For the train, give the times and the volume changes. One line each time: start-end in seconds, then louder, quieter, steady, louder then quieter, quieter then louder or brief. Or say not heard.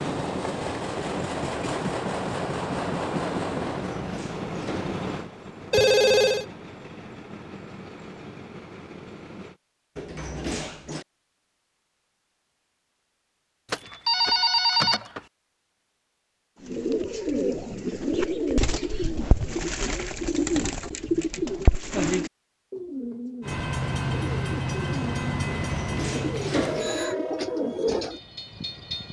0.0-9.6 quieter
23.4-29.0 quieter.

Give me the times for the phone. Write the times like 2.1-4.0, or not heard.
5.7-6.5, 13.7-15.2, 26.3-27.1.